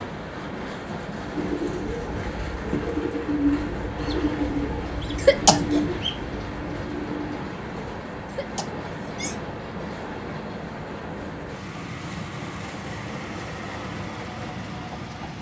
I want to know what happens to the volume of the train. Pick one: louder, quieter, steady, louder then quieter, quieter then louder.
steady.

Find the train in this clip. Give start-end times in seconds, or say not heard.
0.0-15.3.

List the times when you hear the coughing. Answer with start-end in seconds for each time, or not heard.
5.2-5.8, 8.3-9.3.